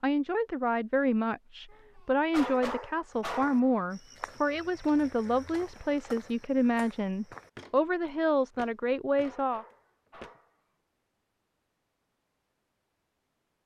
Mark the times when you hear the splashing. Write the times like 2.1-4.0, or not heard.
not heard.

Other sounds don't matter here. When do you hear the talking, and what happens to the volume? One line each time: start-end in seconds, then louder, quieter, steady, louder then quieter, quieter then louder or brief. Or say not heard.
0.0-9.7 steady.